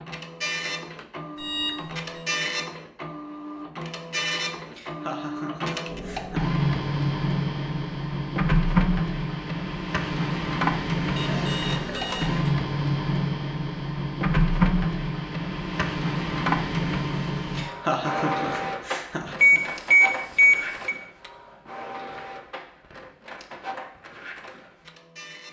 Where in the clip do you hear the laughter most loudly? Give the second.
18 s.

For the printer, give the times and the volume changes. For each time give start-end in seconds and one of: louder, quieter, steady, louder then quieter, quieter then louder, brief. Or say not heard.
0.0-25.4 louder then quieter.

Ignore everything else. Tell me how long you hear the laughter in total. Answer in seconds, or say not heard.
4 s.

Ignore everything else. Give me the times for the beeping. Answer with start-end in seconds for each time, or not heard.
1.4-2.2, 11.2-12.5, 19.4-20.9.